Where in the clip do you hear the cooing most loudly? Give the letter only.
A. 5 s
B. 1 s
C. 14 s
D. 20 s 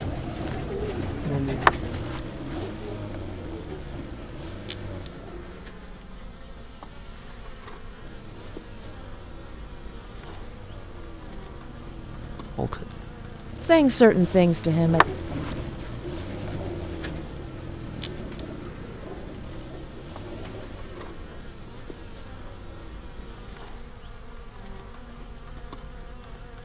B.